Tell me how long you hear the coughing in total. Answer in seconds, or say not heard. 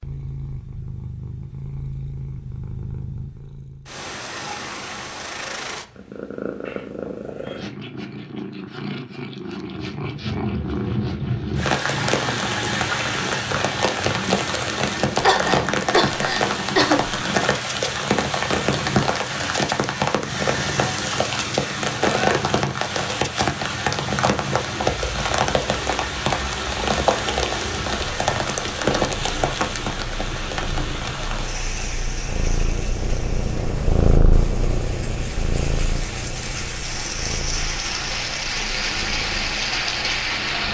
2 s.